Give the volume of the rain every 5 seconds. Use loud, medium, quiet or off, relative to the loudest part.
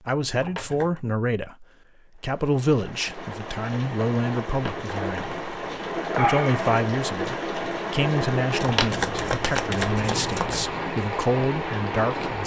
medium, loud, loud.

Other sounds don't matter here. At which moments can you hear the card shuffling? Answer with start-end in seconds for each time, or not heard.
0.3-1.0, 4.5-5.4, 8.6-10.7.